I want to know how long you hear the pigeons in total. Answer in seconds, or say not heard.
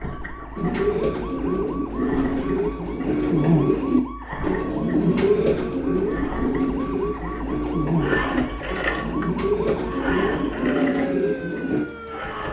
11 s.